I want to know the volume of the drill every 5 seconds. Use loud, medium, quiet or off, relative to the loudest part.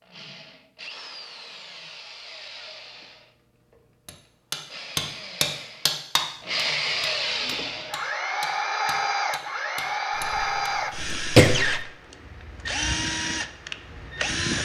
quiet, loud, loud.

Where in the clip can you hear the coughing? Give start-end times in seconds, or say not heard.
10.2-11.8.